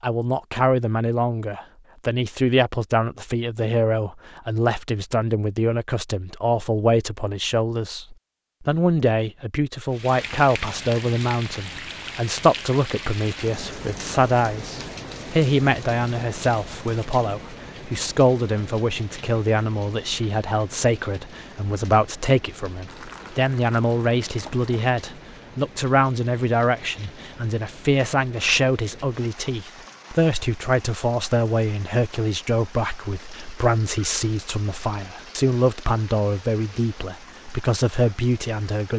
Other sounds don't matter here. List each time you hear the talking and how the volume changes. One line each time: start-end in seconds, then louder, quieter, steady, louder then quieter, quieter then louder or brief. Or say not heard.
0.0-38.9 steady.